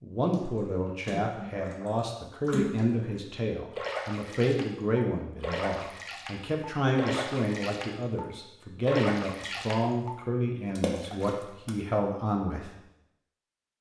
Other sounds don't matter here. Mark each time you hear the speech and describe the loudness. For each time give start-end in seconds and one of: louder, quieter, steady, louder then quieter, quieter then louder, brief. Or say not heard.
0.0-12.7 steady.